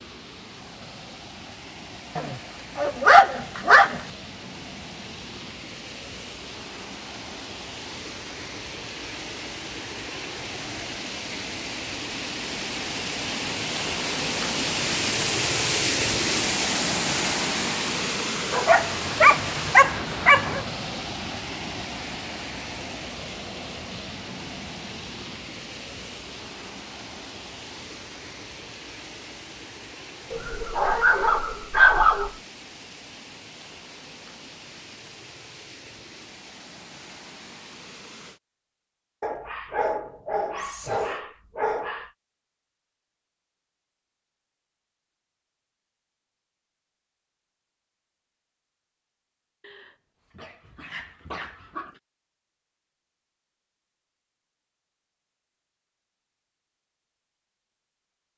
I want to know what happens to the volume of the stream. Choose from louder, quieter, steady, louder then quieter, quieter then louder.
louder then quieter.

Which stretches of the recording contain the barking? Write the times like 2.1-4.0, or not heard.
2.1-4.0, 18.5-20.6, 30.3-32.3, 39.2-42.1, 49.6-52.0.